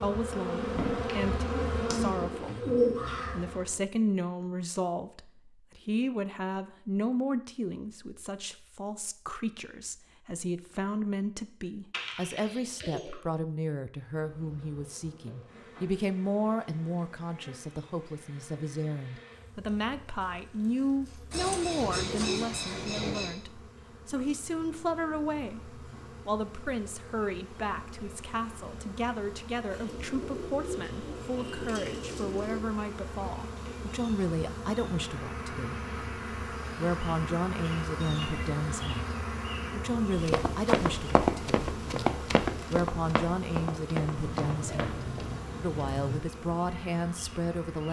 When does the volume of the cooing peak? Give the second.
3 s.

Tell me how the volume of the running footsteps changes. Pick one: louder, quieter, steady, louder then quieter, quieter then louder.
quieter.